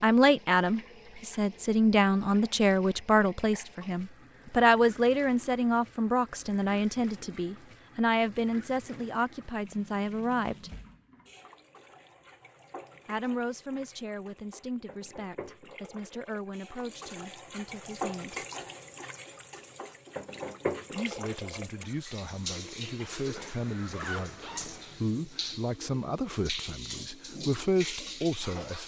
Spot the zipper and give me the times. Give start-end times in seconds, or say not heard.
23.4-25.1.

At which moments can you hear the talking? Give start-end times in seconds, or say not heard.
0.0-10.7, 13.1-18.4, 20.9-28.8.